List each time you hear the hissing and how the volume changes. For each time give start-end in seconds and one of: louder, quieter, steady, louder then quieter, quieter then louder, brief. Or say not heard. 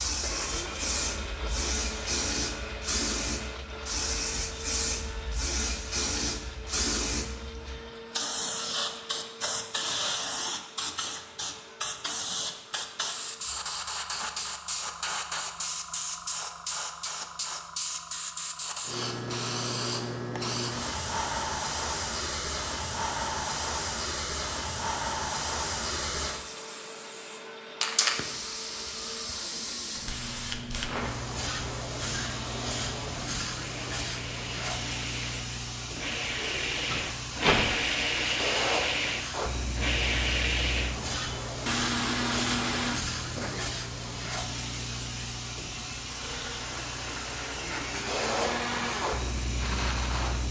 0.0-50.4 steady.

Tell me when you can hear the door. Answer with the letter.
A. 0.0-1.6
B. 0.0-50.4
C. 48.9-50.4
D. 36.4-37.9
D.